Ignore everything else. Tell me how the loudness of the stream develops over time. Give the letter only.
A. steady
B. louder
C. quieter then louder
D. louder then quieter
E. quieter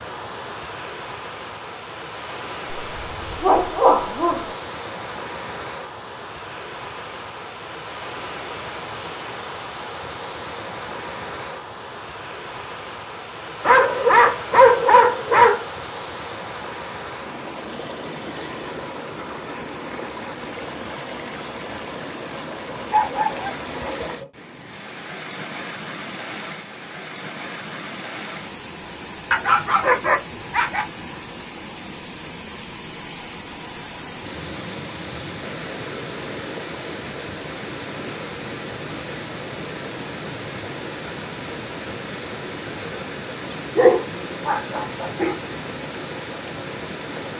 A.